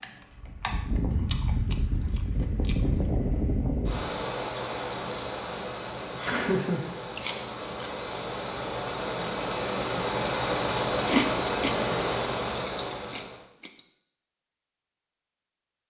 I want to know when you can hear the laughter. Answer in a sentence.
The laughter can be heard from 6.2 to 6.8 s.